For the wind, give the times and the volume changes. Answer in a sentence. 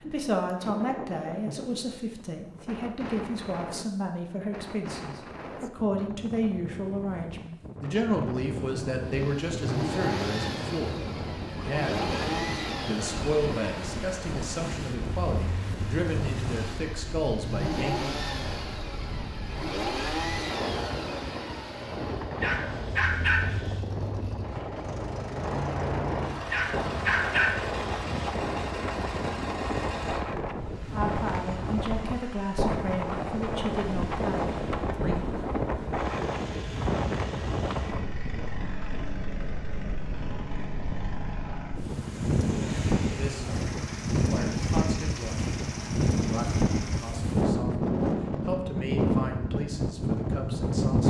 The wind can be heard from 0.0 to 51.0 s, getting louder.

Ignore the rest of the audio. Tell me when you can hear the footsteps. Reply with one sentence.
The footsteps can't be heard in this clip.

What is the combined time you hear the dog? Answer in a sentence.
You can hear the dog for 3 seconds altogether.